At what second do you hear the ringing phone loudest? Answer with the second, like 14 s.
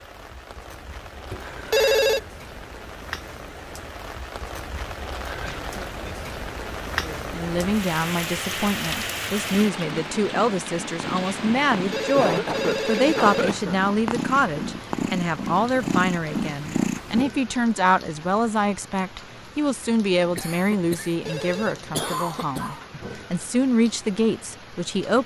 2 s.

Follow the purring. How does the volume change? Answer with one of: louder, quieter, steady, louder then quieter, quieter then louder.
louder.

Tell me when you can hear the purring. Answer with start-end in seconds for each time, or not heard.
9.4-17.2.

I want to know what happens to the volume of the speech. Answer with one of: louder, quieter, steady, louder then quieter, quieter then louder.
steady.